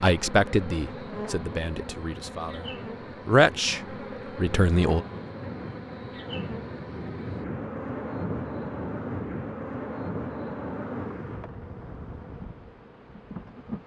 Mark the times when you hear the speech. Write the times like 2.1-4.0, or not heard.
0.0-5.0.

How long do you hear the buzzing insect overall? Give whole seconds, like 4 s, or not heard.
14 s.